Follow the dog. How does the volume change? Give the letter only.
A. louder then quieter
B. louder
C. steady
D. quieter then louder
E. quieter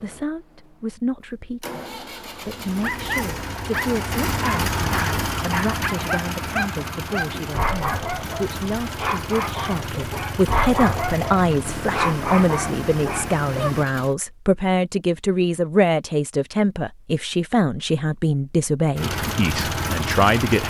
C.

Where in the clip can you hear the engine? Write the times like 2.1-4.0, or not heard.
0.0-14.2, 18.9-20.6.